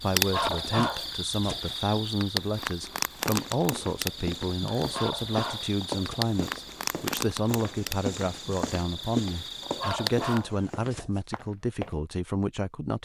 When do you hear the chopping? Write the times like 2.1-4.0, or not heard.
not heard.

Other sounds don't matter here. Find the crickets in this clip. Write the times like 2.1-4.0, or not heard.
0.0-10.4.